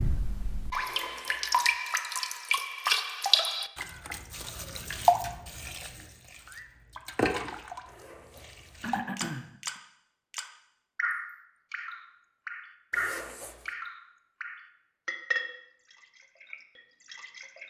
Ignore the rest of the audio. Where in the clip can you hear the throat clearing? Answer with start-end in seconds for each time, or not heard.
8.3-9.8.